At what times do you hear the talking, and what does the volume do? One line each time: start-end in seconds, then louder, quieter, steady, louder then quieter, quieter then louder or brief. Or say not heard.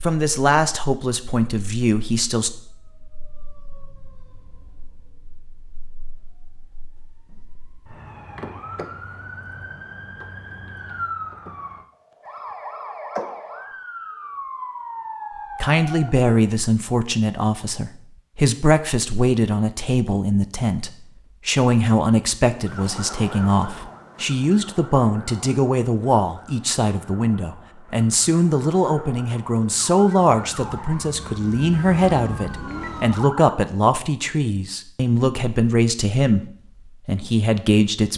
0.0-2.5 brief
15.6-36.5 steady
37.0-38.1 brief.